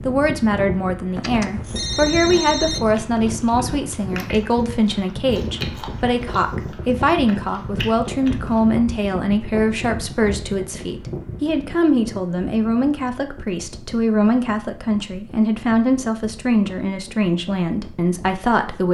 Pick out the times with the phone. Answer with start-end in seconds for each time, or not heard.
1.1-2.9.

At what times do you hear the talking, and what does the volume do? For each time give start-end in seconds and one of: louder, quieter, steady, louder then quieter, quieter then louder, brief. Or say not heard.
0.0-18.8 steady.